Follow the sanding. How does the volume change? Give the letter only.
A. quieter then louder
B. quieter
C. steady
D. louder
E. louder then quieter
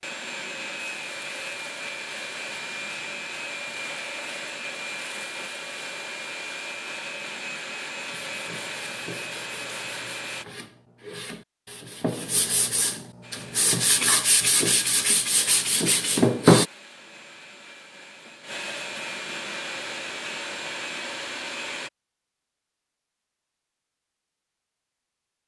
D.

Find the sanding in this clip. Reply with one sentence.
You can hear the sanding from 8.1 to 16.6 s.